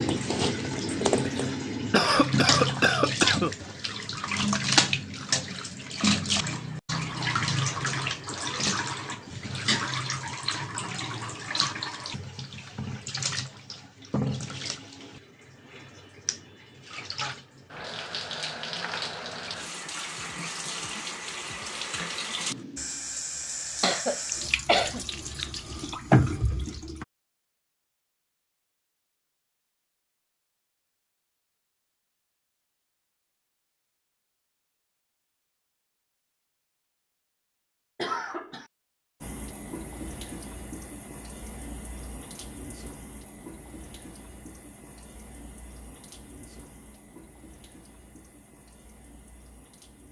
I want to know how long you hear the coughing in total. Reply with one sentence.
The coughing can be heard for 5 seconds in total.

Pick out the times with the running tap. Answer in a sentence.
You can hear the running tap from 0.0 to 27.1 s and from 39.2 to 50.0 s.